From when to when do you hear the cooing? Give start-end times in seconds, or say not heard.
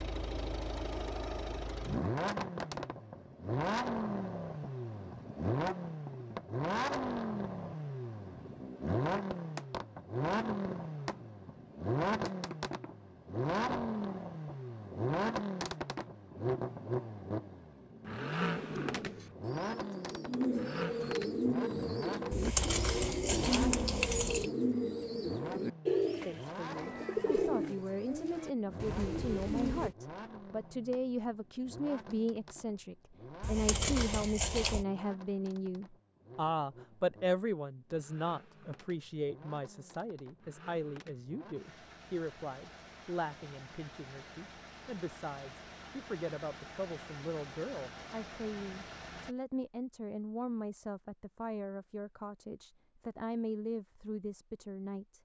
18.2-29.9.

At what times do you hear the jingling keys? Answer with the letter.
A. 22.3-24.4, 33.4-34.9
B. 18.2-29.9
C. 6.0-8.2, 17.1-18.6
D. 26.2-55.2
A.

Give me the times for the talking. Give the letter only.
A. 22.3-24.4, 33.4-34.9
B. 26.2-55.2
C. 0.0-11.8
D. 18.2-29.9
B.